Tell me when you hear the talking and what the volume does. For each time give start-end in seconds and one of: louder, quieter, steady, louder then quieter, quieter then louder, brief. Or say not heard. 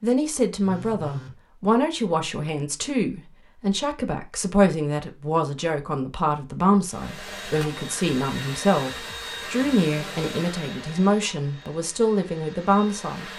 0.0-13.3 steady.